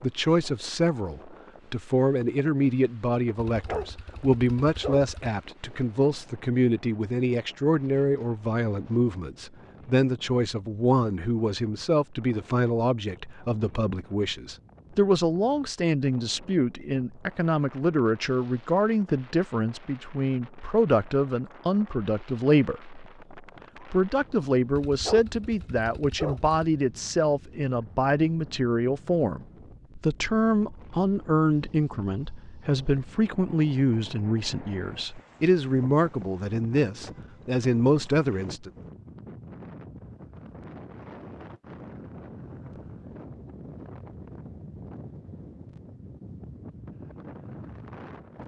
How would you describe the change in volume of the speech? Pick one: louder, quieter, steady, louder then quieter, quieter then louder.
steady.